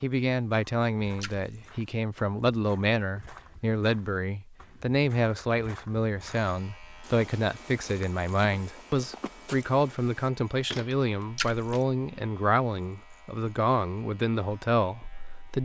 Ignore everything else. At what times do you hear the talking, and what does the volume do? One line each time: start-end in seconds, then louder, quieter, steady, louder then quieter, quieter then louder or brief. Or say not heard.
0.0-15.6 steady.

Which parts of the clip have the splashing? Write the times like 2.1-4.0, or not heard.
1.2-1.6, 11.3-11.8.